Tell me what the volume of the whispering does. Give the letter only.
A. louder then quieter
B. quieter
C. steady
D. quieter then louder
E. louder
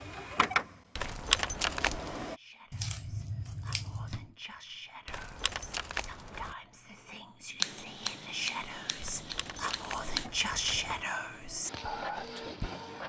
E.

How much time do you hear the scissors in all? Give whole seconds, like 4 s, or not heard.
4 s.